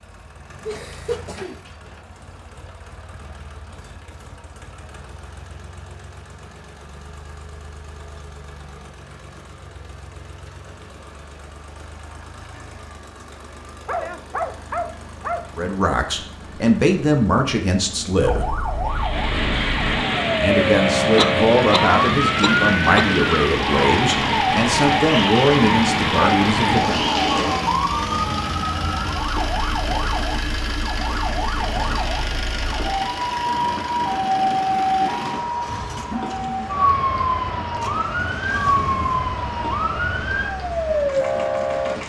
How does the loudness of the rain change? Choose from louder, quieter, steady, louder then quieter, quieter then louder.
quieter.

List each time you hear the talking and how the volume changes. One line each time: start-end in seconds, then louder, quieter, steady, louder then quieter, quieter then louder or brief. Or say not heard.
15.6-18.5 brief
20.4-27.0 steady.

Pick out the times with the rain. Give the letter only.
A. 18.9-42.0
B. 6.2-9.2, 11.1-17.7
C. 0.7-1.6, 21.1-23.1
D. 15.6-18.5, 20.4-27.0
A.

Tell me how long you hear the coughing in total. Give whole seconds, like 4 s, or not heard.
3 s.